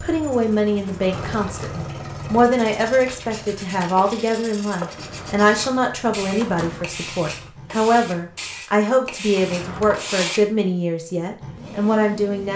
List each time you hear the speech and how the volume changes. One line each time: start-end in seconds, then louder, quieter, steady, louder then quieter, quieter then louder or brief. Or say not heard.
0.0-12.5 steady.